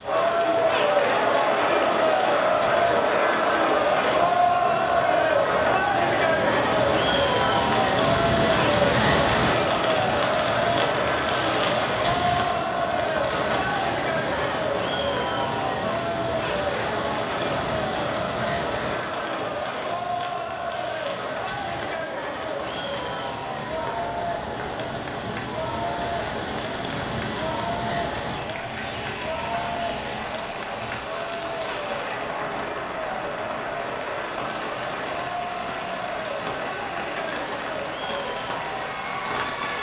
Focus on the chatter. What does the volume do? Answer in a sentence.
The loudness of the chatter goes down.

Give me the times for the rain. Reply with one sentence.
The rain can be heard from 0.0 to 39.7 s.